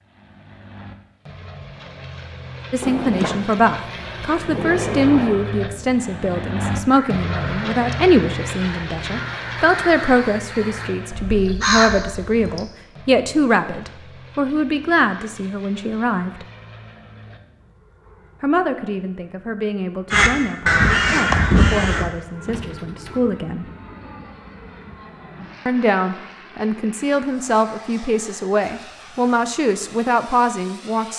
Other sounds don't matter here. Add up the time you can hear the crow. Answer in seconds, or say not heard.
8 s.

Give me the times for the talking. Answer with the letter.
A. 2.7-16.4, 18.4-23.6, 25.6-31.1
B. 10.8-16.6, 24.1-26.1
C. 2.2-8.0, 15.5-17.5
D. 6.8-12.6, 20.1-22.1
A.